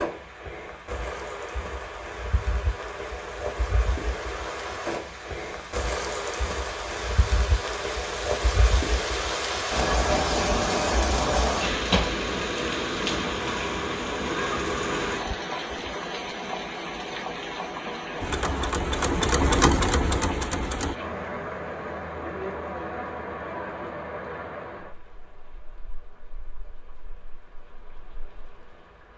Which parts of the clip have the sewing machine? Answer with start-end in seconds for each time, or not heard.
18.2-20.9.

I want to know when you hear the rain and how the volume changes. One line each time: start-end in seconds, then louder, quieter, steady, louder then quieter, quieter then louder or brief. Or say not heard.
0.0-29.1 louder then quieter.